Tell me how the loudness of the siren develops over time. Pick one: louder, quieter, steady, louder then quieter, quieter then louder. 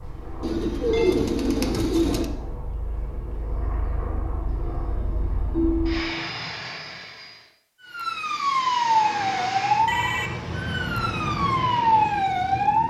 quieter then louder.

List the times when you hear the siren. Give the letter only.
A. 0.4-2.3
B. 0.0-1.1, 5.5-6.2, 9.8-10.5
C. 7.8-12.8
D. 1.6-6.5
C.